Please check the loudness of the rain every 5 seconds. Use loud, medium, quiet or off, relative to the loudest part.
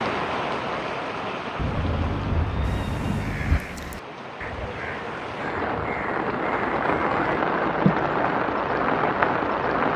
medium, loud.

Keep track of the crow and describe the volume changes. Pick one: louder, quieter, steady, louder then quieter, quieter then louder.
steady.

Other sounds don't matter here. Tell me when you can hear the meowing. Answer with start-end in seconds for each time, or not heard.
1.6-3.6.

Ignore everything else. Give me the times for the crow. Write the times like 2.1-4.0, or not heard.
2.6-7.4.